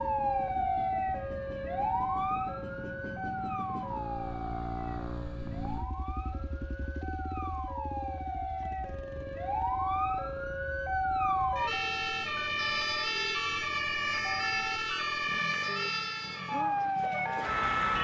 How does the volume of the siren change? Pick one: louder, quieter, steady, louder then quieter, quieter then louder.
quieter then louder.